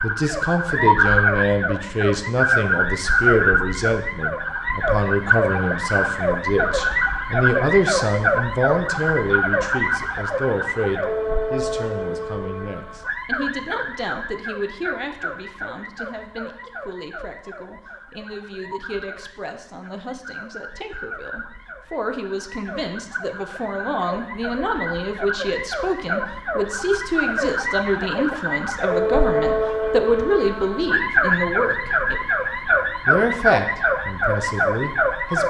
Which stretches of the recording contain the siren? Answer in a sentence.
You can hear the siren from 0.0 to 35.4 s.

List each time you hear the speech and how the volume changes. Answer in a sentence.
You can hear the speech from 0.0 to 32.2 s, getting quieter then louder; and briefly from 33.0 to 35.4 s.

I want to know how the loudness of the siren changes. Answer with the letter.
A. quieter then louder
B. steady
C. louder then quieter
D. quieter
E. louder
A.